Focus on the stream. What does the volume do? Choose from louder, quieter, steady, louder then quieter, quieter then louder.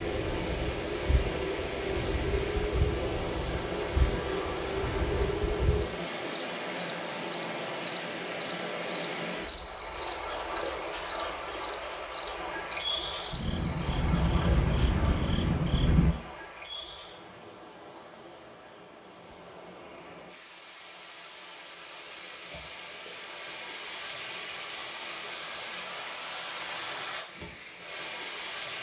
quieter then louder.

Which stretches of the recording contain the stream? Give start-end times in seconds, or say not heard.
0.0-28.7.